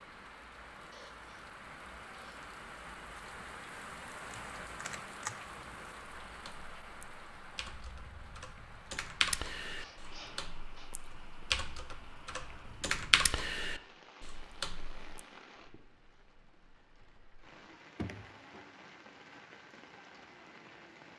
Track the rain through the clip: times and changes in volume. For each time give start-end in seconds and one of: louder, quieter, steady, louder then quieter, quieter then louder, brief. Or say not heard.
0.0-21.1 quieter.